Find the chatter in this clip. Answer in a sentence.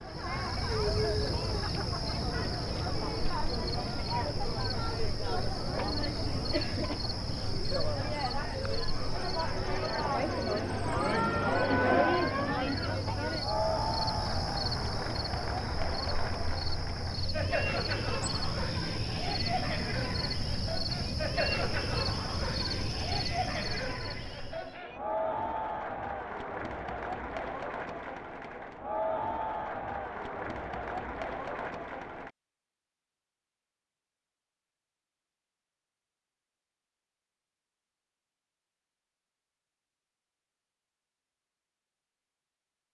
You can hear the chatter from 0.0 to 32.3 s.